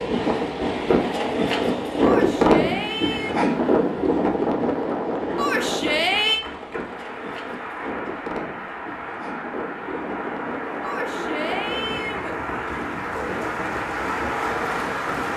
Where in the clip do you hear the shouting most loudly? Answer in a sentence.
The volume of the shouting peaks at 6 seconds.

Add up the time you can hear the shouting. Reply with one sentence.
You can hear the shouting for 4 seconds altogether.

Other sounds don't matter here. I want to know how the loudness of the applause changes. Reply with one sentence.
The volume of the applause goes up.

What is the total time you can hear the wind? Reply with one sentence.
The wind can be heard for 15 seconds in total.